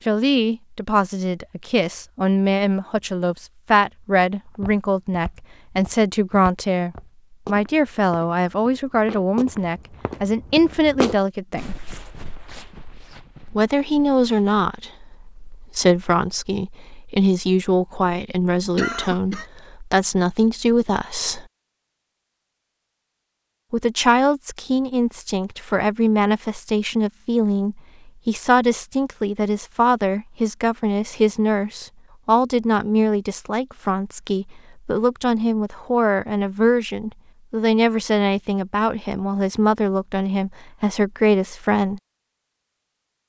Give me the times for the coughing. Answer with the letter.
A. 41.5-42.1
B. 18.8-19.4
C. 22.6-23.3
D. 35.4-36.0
B.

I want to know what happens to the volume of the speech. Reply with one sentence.
The volume of the speech stays about the same.